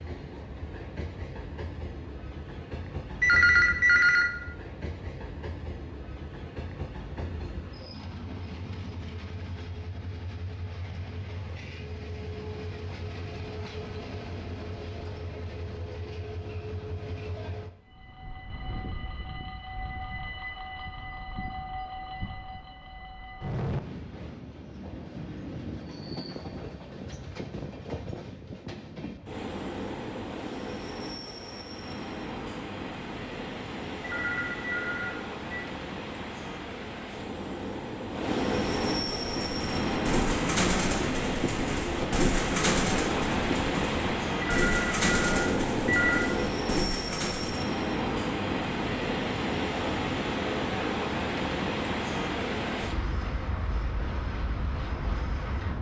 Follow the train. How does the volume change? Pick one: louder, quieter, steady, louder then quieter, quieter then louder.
louder.